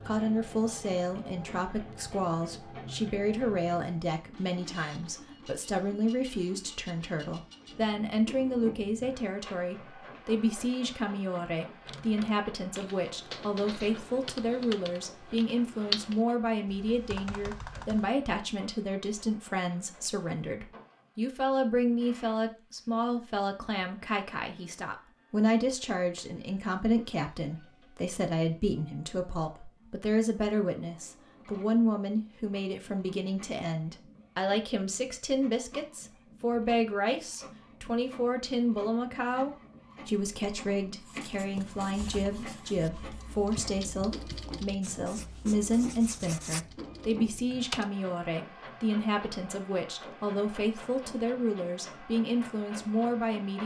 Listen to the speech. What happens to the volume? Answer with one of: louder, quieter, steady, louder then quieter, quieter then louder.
steady.